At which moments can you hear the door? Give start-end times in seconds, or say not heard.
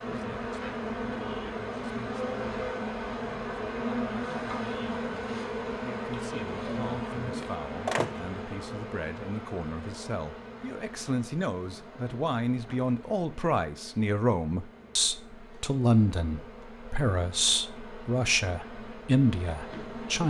7.2-8.3.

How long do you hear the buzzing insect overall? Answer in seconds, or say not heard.
20 s.